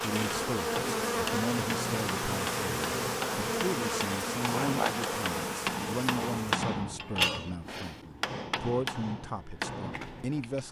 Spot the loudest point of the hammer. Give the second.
7 s.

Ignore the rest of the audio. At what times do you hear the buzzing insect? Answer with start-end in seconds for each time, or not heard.
0.0-6.5.